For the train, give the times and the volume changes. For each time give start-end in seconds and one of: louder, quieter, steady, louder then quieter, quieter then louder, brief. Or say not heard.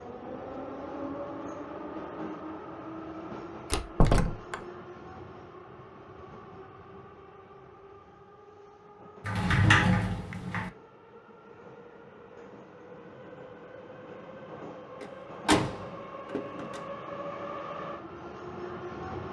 0.0-19.2 quieter then louder.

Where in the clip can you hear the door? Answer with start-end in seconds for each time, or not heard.
3.7-4.5, 9.2-10.7, 15.0-16.8.